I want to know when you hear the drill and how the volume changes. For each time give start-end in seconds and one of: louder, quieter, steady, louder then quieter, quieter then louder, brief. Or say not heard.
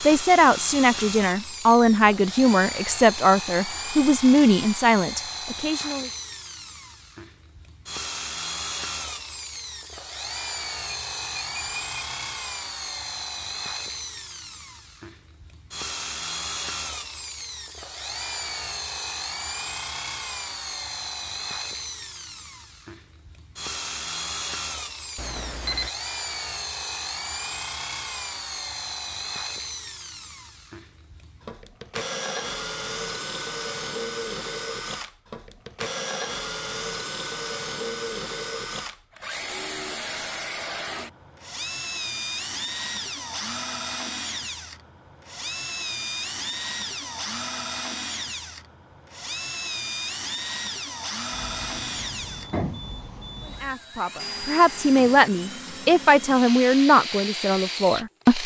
0.0-58.4 steady.